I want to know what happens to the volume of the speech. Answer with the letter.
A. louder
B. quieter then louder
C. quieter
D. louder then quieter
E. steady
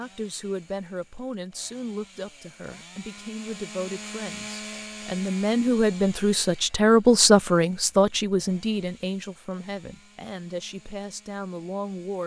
D.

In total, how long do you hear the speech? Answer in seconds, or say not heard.
12 s.